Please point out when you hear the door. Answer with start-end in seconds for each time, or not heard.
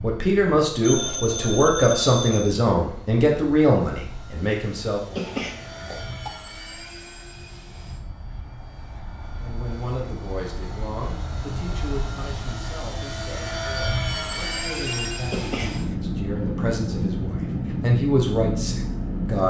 not heard.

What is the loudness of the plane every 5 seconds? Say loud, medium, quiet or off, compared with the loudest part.
quiet, quiet, loud, loud.